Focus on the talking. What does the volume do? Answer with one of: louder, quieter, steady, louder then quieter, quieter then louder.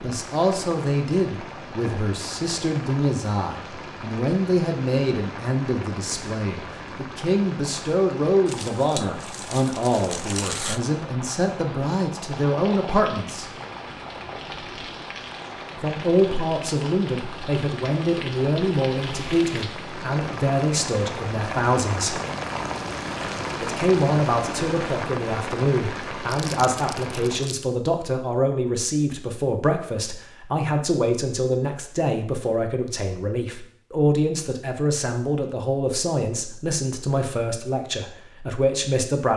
steady.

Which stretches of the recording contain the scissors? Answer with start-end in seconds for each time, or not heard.
not heard.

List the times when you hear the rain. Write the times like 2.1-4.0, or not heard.
0.0-27.6.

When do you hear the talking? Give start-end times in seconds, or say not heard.
0.0-13.5, 15.8-22.1, 23.6-39.3.